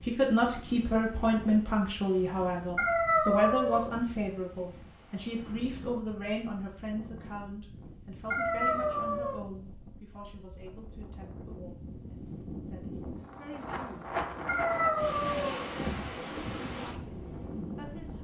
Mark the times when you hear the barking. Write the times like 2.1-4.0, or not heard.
2.8-3.9, 8.3-9.4, 14.4-15.6.